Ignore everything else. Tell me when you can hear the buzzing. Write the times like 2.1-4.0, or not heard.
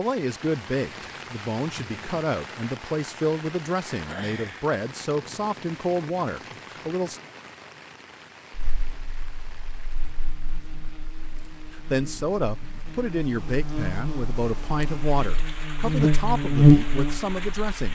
8.6-17.8.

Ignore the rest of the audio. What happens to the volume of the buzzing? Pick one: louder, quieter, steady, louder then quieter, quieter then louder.
louder.